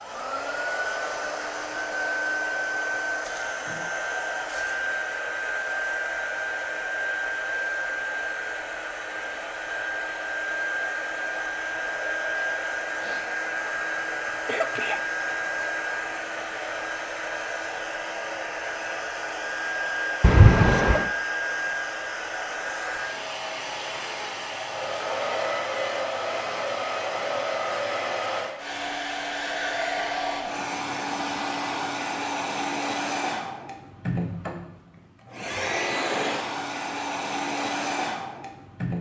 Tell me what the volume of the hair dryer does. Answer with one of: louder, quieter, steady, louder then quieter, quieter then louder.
steady.